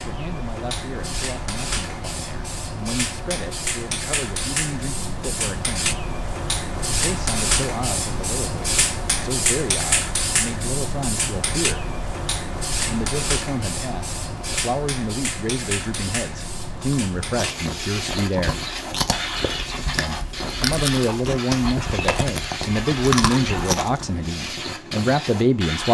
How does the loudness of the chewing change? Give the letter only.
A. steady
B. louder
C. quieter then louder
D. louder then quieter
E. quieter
B.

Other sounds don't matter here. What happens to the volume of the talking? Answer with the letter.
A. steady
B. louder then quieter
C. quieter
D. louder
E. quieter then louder
D.